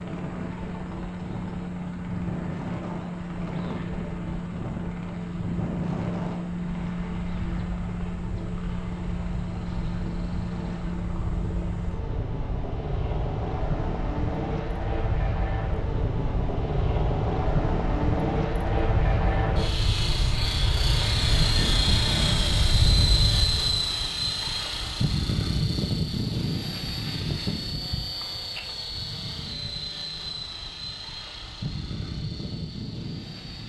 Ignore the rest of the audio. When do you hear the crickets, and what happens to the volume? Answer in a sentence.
The crickets can't be heard in this clip.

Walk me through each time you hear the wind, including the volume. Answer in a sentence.
You can hear the wind from 0.0 to 23.9 s, getting louder.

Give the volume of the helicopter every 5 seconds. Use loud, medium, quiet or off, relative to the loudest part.
medium, medium, medium, loud, loud, loud, medium.